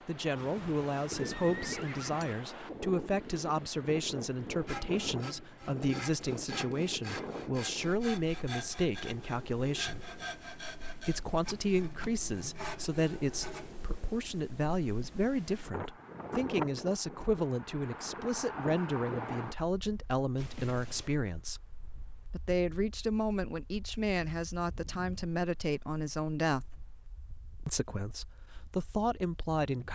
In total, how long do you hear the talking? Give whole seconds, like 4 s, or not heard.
27 s.